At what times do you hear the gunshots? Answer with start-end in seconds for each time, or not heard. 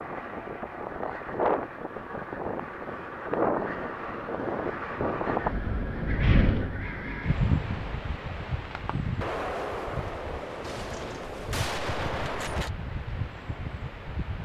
9.2-12.7.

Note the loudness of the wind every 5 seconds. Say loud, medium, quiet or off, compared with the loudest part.
loud, loud, medium.